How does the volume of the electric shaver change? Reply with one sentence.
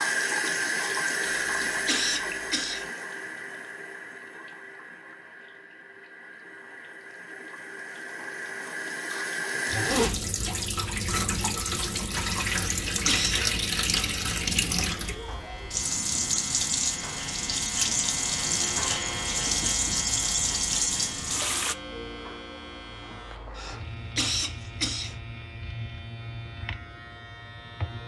The loudness of the electric shaver goes up, then down.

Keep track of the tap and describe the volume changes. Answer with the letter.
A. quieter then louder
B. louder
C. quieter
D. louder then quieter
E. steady
A.